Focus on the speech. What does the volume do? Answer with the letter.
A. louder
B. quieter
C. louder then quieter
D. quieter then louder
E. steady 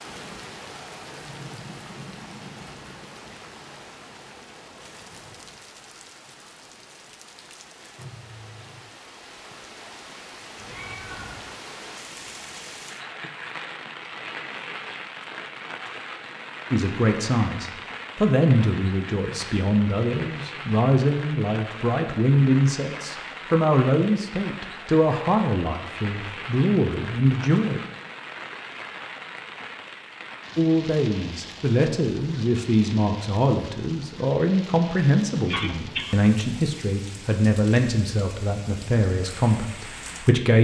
E.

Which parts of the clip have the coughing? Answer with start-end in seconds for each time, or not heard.
35.5-36.1.